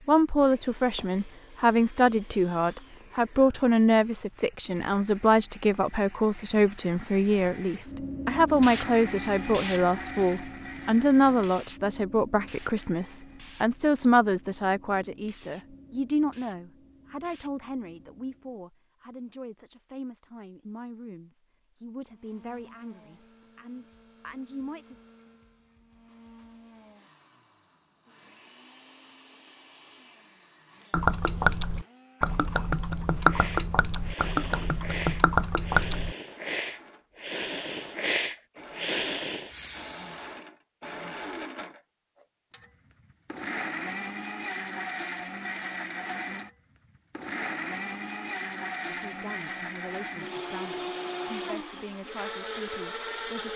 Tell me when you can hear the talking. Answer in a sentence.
The talking can be heard from 0.1 to 24.9 s and from 48.9 to 53.5 s.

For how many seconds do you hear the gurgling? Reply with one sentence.
You can hear the gurgling for 5 seconds altogether.